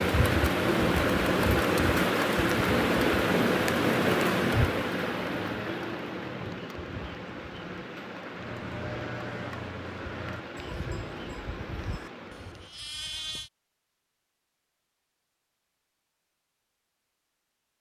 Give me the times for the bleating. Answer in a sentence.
The bleating can be heard from 8.3 to 13.5 s.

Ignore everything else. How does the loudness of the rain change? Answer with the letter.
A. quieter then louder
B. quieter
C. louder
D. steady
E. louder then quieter
B.